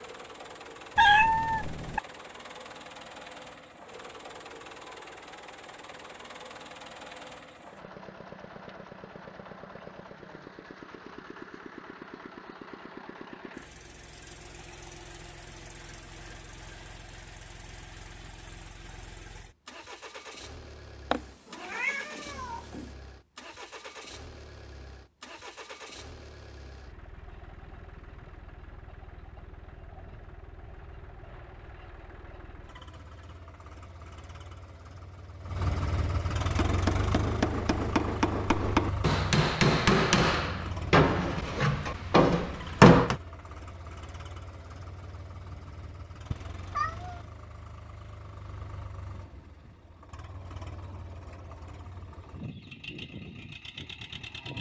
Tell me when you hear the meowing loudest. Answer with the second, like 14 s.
1 s.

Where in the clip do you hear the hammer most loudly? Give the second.
43 s.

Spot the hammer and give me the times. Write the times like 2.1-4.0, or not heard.
36.4-43.1.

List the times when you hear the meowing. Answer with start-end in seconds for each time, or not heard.
0.9-2.0, 21.1-22.9, 46.3-47.2.